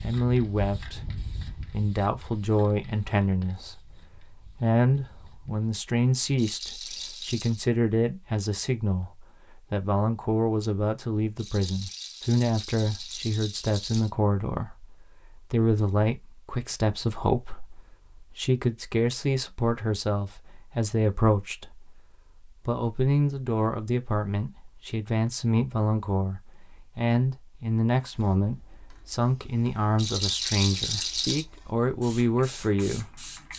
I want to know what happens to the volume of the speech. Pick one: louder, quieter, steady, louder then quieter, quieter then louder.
steady.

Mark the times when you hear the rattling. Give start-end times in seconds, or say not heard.
6.3-7.6, 11.3-14.1, 29.9-31.4.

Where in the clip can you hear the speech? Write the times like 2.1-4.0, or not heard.
0.0-33.2.